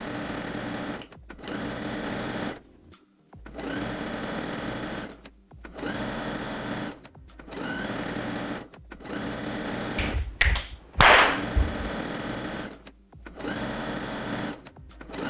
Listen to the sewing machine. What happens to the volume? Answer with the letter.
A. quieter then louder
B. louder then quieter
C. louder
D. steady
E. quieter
D.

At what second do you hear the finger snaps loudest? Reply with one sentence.
The volume of the finger snaps peaks at 11 seconds.